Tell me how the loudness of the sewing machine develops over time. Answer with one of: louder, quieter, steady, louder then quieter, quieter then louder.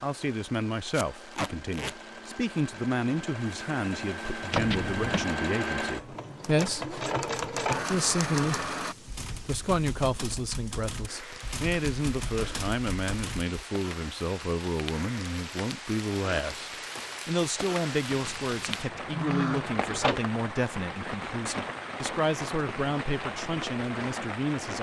louder.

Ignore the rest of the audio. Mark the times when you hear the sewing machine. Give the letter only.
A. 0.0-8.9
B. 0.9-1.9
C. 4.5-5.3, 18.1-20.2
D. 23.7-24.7
A.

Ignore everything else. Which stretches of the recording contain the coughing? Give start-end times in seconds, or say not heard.
not heard.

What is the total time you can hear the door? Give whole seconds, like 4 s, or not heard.
3 s.